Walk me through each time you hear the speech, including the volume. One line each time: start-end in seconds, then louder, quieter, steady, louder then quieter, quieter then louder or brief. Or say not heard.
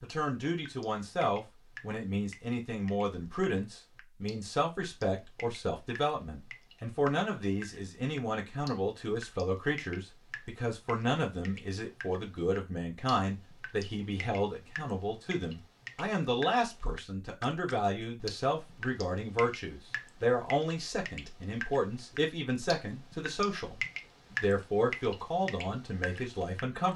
0.0-26.9 steady.